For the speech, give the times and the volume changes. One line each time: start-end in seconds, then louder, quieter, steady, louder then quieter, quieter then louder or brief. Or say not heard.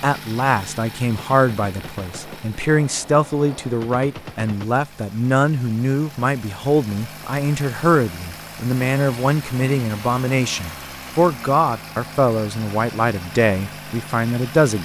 0.0-14.8 steady.